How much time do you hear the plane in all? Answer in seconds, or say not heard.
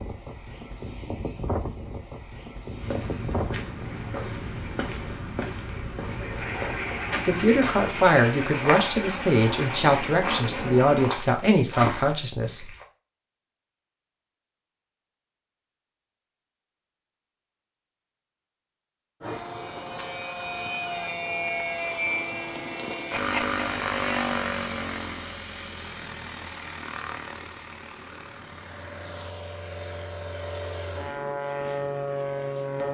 25 s.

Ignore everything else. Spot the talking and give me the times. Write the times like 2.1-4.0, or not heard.
7.2-12.7.